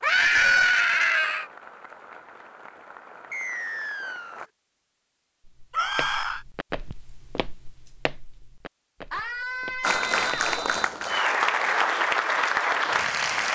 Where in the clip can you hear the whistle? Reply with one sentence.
The whistle can be heard from 3.3 to 4.5 s and from 9.8 to 10.9 s.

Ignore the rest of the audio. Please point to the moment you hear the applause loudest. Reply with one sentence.
The loudest moment of the applause is at 12 seconds.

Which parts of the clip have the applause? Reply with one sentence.
The applause can be heard from 0.0 to 4.5 s and from 9.8 to 13.4 s.